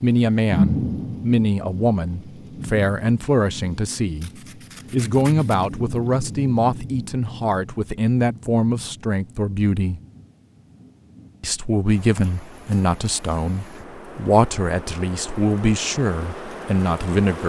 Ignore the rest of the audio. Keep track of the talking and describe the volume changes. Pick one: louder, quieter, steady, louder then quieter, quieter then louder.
steady.